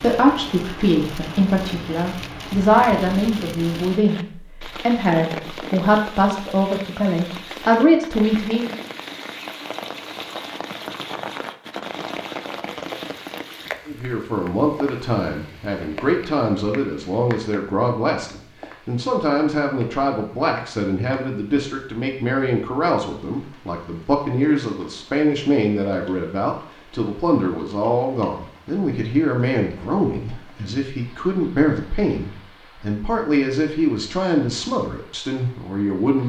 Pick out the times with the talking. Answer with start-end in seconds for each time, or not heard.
0.0-8.8, 13.8-36.2.